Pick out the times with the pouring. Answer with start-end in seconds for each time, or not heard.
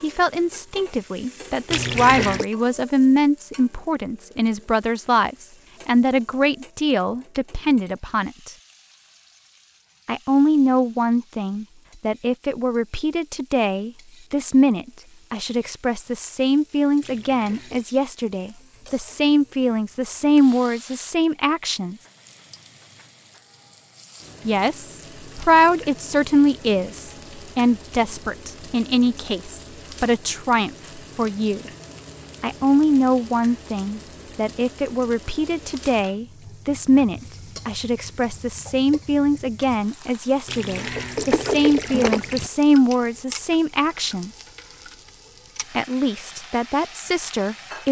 1.7-2.5, 17.0-17.9, 40.5-42.5.